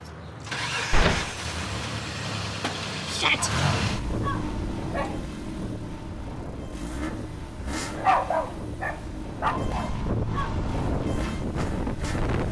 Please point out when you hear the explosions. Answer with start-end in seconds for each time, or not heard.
0.9-1.4.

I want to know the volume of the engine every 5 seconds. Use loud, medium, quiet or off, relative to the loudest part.
loud, medium, medium.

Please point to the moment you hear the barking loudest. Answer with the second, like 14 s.
8 s.